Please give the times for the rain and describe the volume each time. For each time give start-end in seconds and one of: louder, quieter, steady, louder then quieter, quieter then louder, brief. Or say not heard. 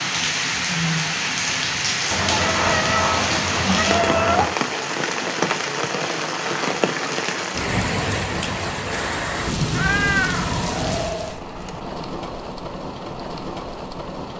0.0-14.3 quieter.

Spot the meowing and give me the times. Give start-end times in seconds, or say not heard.
2.1-4.5, 9.7-11.3.